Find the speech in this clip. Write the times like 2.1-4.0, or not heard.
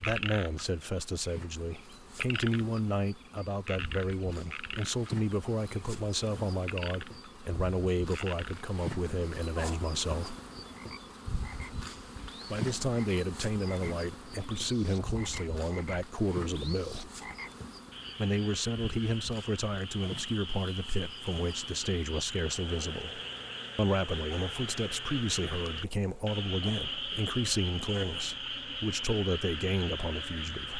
0.0-10.3, 12.4-17.1, 18.1-30.7.